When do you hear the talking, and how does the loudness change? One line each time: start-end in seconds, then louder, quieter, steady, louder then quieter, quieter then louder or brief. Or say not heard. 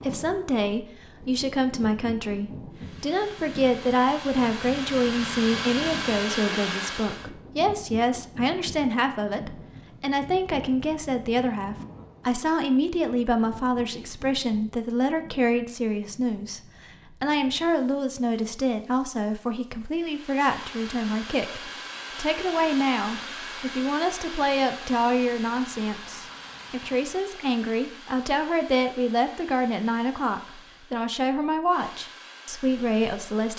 0.0-33.5 steady.